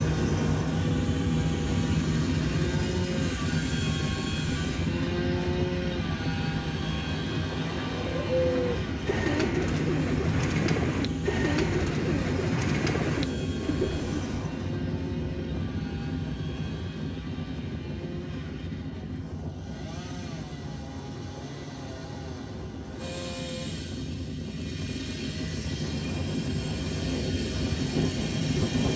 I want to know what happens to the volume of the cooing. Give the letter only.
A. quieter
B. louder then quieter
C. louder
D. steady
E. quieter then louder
D.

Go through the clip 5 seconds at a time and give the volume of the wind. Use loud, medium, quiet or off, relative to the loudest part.
loud, loud, loud, medium, medium, loud.